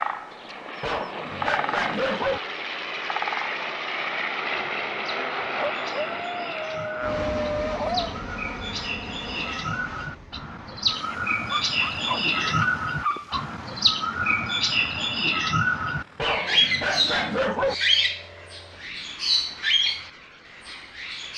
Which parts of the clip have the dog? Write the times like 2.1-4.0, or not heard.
0.8-2.4, 5.5-8.2, 11.5-13.4, 16.1-17.8.